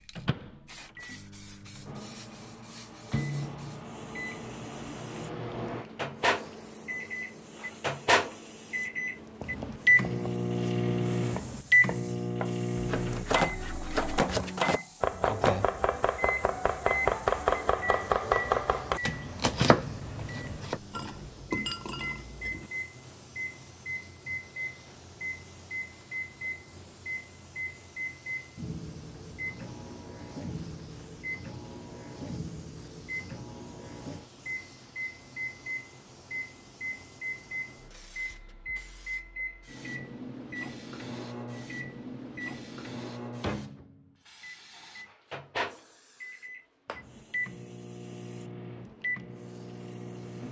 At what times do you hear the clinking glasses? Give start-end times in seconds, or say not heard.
20.9-22.7.